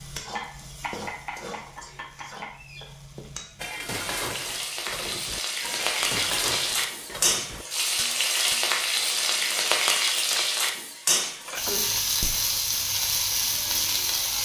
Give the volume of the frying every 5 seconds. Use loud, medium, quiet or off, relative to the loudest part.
medium, loud, loud.